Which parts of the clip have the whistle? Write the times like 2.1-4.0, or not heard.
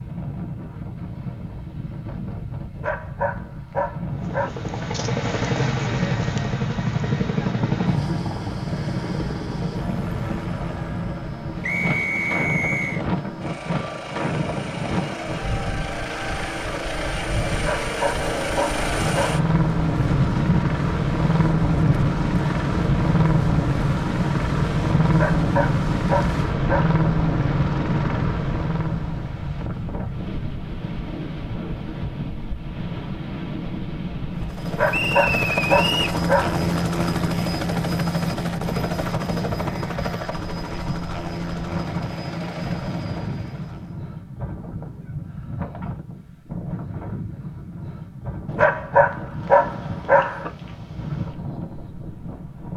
11.6-13.1, 34.9-36.2.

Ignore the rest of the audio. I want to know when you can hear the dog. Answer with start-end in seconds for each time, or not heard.
2.7-4.5, 17.5-19.4, 25.1-27.0, 34.6-36.5, 48.5-50.5.